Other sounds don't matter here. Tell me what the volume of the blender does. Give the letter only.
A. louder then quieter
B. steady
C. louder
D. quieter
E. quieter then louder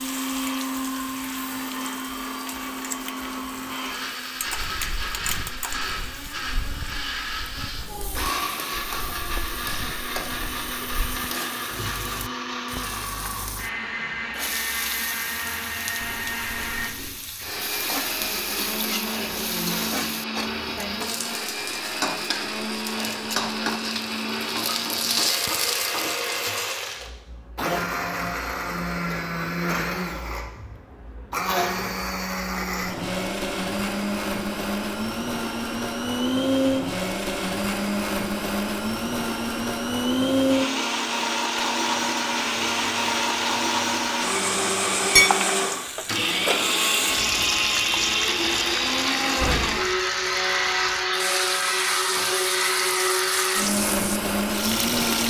C.